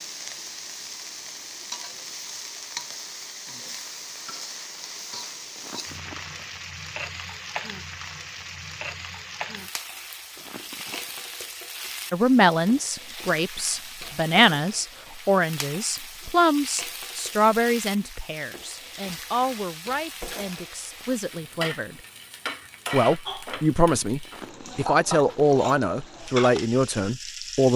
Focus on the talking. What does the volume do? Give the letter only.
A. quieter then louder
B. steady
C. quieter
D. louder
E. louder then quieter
A.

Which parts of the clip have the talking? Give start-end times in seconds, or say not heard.
12.1-22.0, 22.9-27.7.